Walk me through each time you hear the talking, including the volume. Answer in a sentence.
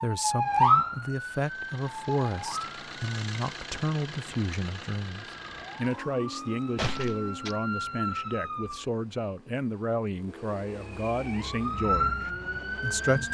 The talking can be heard from 0.0 to 13.2 s, at a steady volume.